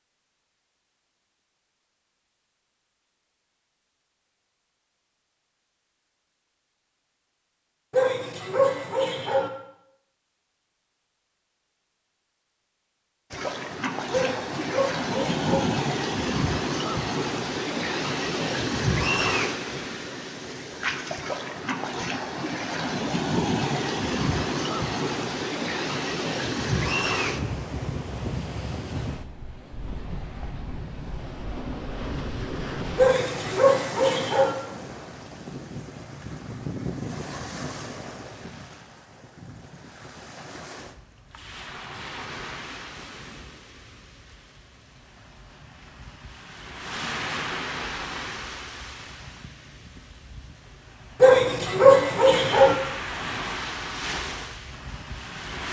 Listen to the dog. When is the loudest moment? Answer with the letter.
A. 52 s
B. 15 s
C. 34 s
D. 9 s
A.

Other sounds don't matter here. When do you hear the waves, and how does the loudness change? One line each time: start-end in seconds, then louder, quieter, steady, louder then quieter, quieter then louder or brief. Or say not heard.
13.3-55.6 quieter then louder.